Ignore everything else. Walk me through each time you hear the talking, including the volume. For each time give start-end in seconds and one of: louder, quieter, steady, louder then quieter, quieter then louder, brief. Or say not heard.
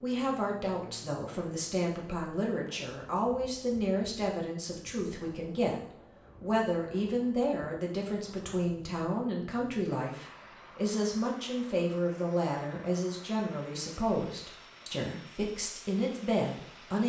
0.0-17.0 steady.